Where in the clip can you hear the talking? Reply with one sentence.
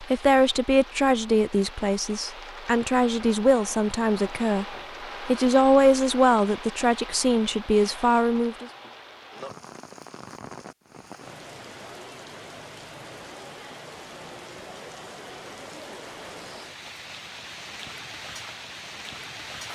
You can hear the talking from 0.0 to 4.7 s and from 5.2 to 8.7 s.